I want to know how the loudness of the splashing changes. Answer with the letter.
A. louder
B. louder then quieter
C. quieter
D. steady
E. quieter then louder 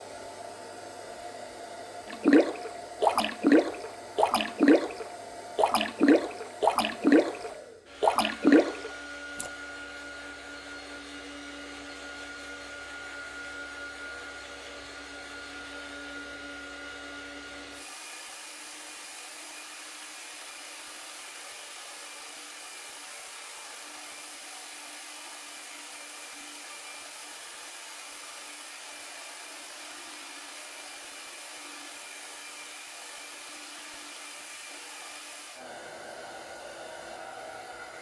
D.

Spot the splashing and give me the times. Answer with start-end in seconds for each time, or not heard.
2.1-9.5.